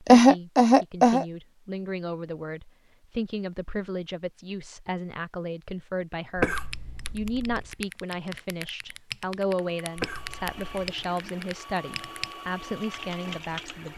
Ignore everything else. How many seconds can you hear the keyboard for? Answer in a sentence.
The keyboard can be heard for 7 seconds in total.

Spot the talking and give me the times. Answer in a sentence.
You can hear the talking from 0.0 to 13.9 s.